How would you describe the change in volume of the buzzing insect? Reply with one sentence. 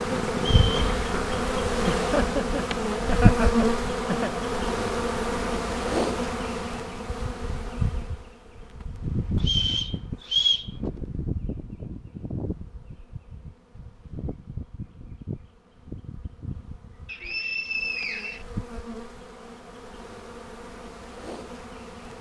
The volume of the buzzing insect goes down.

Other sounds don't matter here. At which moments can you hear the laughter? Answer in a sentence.
The laughter can be heard from 1.8 to 4.3 s.